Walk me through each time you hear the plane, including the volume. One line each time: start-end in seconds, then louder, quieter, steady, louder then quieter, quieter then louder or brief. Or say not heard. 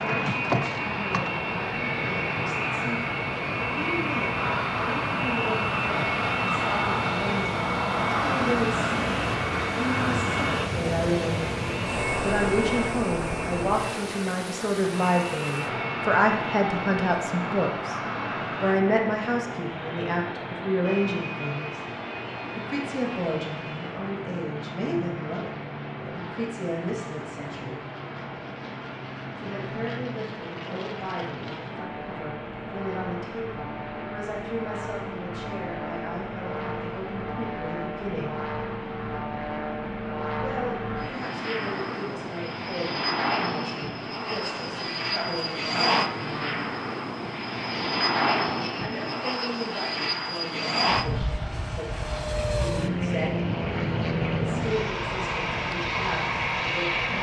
0.0-57.1 quieter then louder.